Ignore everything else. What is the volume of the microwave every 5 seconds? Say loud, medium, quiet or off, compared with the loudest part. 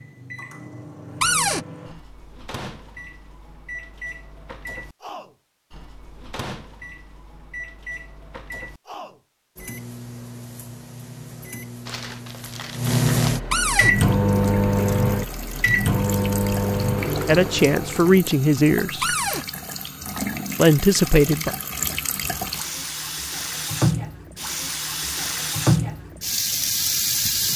quiet, quiet, loud, loud, off, off.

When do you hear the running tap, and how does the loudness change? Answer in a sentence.
You can hear the running tap from 13.8 to 27.5 s, getting louder.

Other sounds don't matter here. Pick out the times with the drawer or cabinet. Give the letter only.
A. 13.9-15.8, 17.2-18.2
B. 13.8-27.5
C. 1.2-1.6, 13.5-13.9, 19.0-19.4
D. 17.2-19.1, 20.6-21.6
C.